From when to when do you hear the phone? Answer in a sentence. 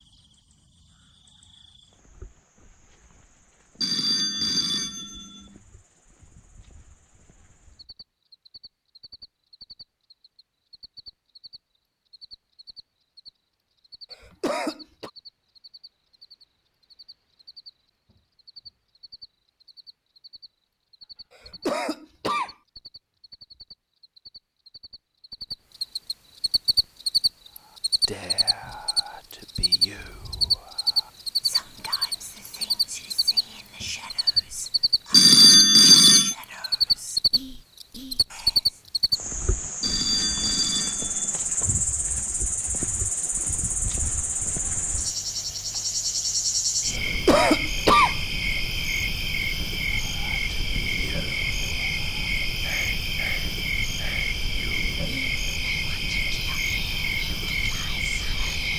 The phone can be heard from 3.8 to 5.5 s, from 35.1 to 36.4 s and from 39.8 to 41.3 s.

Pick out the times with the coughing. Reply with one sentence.
The coughing can be heard from 14.1 to 15.1 s, from 21.4 to 22.6 s and from 47.0 to 48.1 s.